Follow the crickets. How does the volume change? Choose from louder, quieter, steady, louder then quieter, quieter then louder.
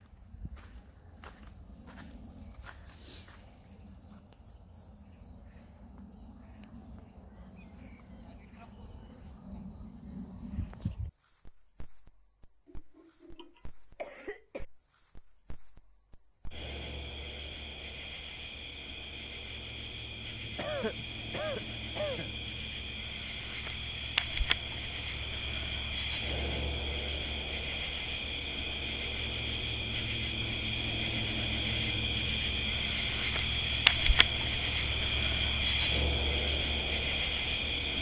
louder.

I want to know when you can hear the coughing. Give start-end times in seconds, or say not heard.
12.7-14.7, 20.4-22.4.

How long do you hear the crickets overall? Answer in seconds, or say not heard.
38 s.